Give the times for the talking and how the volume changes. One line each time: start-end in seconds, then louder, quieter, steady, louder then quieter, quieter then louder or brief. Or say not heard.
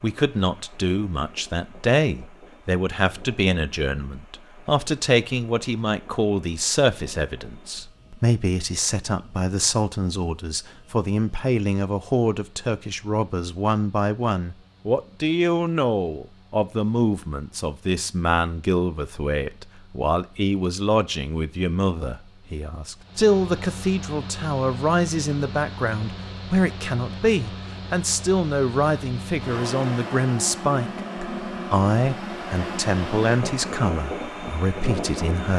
0.0-35.5 steady.